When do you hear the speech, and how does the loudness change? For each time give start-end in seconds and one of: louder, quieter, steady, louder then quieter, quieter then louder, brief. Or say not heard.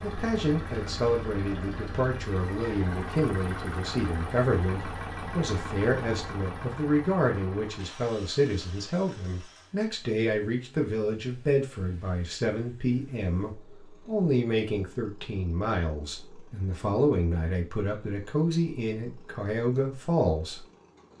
0.0-21.1 steady.